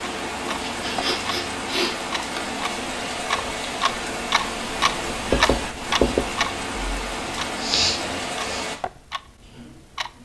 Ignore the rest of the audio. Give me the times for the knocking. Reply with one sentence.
The knocking can be heard from 5.3 to 6.2 s.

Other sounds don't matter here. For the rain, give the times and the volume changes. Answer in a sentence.
You can hear the rain from 0.0 to 8.8 s, at a steady volume.